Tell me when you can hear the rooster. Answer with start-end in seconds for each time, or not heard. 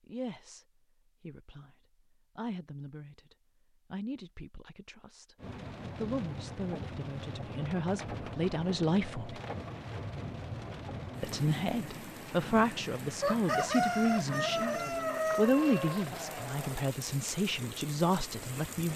13.2-16.1.